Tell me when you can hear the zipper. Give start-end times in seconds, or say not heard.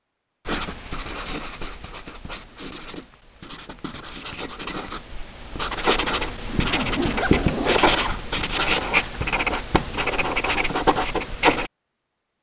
6.2-8.4.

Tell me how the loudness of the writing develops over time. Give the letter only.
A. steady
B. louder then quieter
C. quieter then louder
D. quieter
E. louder
E.